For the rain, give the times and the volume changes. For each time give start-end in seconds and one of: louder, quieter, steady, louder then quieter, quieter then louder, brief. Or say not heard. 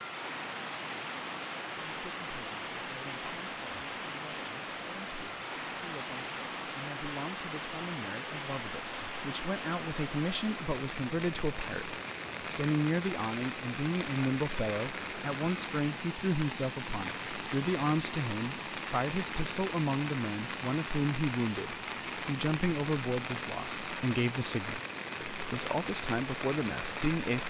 0.0-27.4 steady.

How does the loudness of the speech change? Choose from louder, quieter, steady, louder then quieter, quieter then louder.
louder.